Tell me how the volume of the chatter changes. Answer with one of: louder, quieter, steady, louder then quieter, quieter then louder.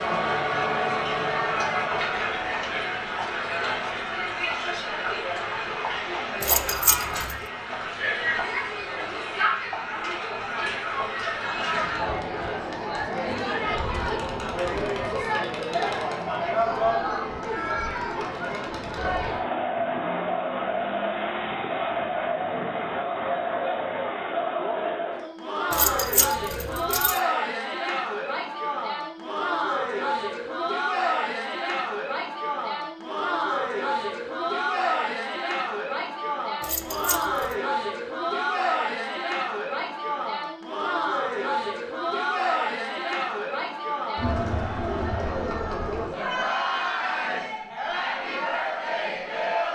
steady.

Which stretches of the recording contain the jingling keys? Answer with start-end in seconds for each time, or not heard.
6.4-7.4, 25.7-27.2, 36.6-37.5.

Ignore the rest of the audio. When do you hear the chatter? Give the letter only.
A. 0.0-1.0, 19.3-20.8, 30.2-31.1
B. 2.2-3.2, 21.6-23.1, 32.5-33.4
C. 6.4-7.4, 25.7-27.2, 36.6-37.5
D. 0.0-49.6
D.